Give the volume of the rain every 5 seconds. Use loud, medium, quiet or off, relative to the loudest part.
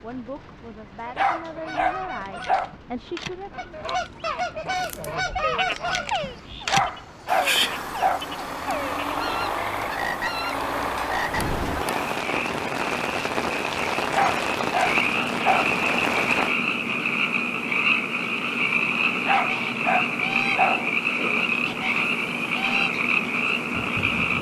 quiet, quiet, loud, loud, off.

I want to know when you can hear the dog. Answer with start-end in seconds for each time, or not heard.
1.1-2.7, 6.7-8.2, 14.1-15.7, 19.2-20.9.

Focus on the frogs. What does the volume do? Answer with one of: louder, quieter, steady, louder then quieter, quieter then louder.
louder.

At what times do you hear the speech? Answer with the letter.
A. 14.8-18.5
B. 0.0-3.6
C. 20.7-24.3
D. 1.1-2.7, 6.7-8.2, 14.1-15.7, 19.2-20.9
B.